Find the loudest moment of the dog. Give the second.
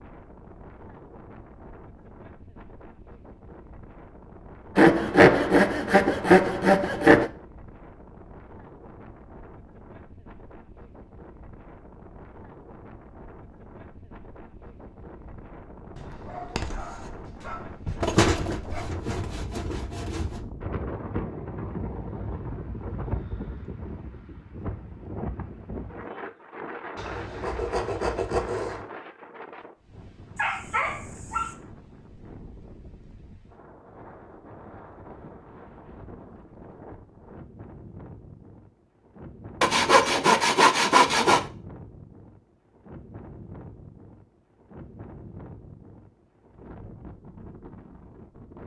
31 s.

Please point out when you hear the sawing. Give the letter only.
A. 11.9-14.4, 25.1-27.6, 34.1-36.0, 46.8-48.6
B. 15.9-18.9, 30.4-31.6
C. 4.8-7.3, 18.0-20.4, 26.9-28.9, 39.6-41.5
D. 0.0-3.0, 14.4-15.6
C.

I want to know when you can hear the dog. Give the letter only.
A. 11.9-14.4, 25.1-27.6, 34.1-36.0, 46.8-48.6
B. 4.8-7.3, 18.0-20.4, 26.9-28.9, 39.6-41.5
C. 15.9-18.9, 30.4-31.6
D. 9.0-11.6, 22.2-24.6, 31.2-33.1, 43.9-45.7
C.